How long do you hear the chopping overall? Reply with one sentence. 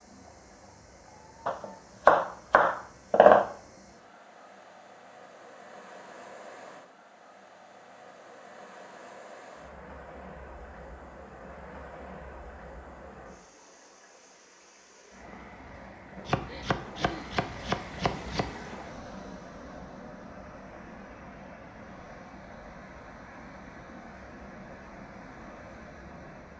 The chopping can be heard for 4 seconds in total.